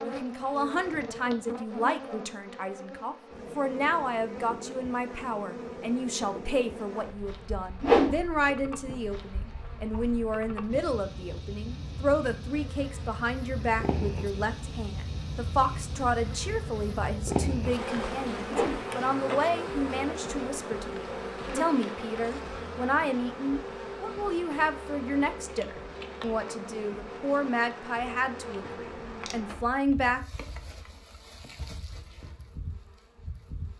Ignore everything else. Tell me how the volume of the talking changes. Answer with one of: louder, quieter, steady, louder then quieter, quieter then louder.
steady.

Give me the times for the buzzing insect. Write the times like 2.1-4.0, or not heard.
0.0-33.7.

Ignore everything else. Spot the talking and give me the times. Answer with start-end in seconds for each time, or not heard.
0.0-30.2.